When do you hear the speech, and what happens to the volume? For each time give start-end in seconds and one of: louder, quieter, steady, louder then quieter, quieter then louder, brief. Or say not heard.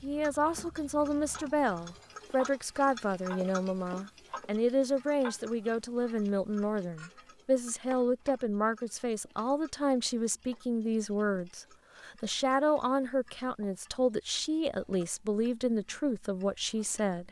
0.0-17.2 steady.